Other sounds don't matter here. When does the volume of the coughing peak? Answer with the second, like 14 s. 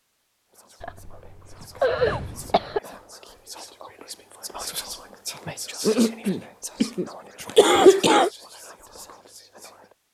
8 s.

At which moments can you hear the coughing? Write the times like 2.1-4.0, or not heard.
0.8-2.8, 5.8-8.3.